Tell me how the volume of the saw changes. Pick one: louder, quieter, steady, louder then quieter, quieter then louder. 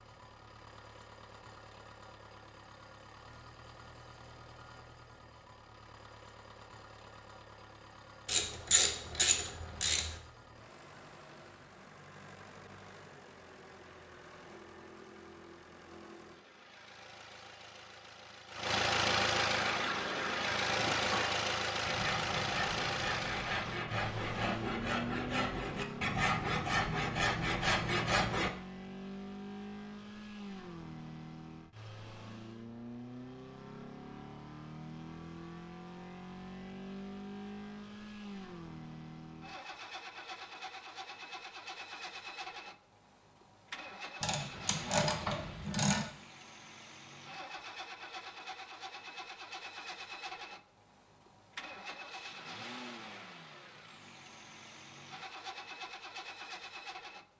louder.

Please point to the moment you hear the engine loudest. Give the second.
19 s.